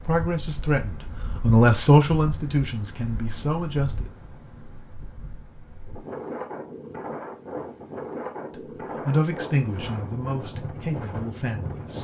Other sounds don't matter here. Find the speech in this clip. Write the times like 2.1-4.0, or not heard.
0.0-4.1, 8.6-12.0.